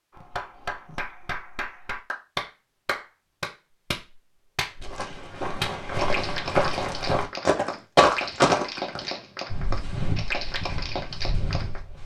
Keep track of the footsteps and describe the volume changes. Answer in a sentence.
The loudness of the footsteps goes up, then down.